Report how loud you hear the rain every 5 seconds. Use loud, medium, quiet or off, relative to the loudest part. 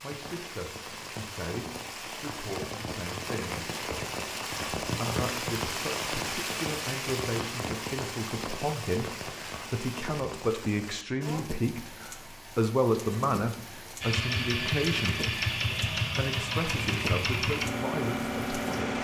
loud, loud, medium, medium.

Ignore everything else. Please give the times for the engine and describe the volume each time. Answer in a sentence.
The engine can be heard from 14.0 to 18.9 s, at a steady volume.